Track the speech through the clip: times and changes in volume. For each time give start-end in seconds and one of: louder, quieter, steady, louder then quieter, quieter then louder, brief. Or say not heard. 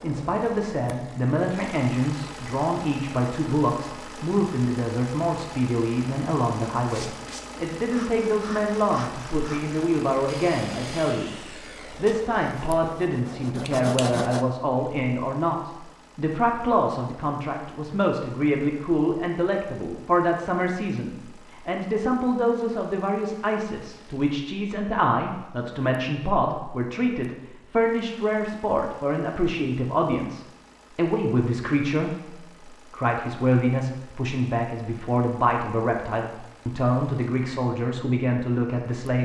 0.0-39.2 steady.